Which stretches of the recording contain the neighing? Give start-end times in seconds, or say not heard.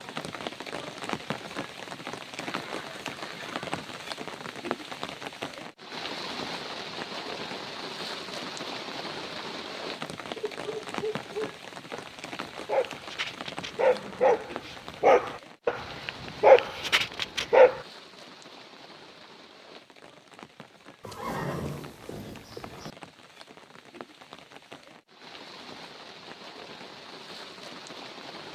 2.4-4.0, 13.6-14.4, 21.0-22.9.